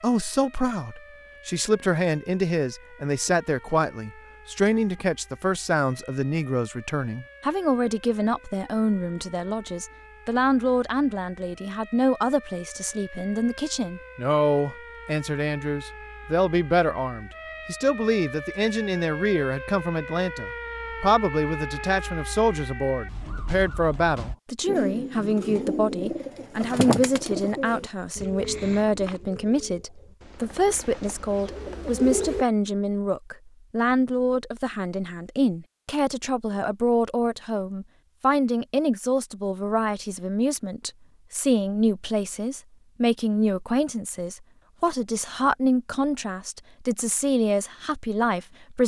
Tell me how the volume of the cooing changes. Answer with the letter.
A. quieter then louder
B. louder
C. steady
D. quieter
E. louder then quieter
A.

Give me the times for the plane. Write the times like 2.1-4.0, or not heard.
not heard.